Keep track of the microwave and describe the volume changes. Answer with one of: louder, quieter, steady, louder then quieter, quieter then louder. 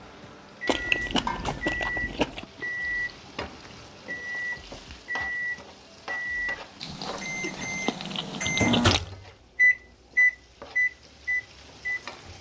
louder.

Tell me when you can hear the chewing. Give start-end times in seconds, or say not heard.
0.7-2.5, 6.8-9.1.